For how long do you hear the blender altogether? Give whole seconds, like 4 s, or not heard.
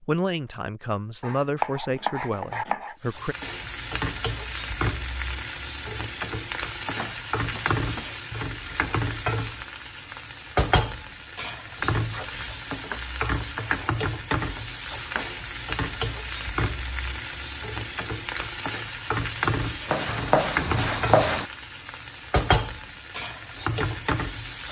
not heard.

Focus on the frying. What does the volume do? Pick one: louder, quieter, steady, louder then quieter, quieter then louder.
steady.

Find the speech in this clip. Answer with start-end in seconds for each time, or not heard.
0.0-3.4.